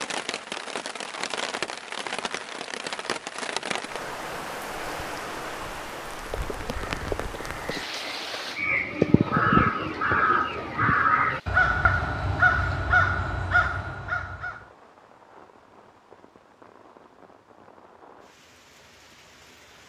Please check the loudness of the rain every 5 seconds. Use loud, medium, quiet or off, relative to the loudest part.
loud, loud, quiet, quiet.